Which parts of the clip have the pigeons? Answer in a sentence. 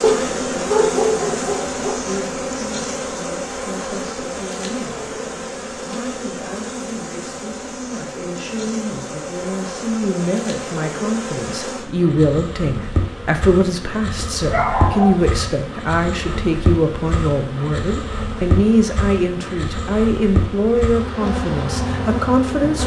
The pigeons can't be heard in this clip.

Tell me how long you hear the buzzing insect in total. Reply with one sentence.
The buzzing insect can be heard for 23 seconds in total.